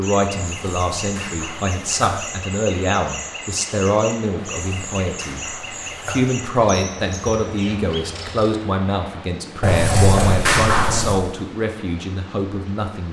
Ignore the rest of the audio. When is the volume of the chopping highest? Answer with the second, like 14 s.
11 s.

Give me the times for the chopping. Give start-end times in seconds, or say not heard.
0.4-2.4, 4.6-6.4, 9.6-11.2.